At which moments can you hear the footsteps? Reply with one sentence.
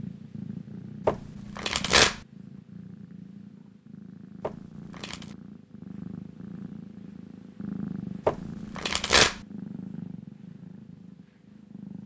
You can't hear the footsteps here.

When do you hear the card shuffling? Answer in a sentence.
You can hear the card shuffling from 1.1 to 2.2 s, from 4.4 to 5.3 s and from 8.2 to 9.3 s.